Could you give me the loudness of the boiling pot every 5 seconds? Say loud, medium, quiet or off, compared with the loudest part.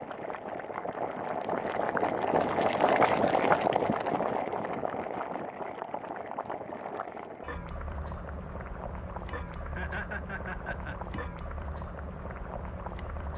loud, medium, quiet.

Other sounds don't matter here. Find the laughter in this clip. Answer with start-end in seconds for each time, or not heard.
9.6-11.2.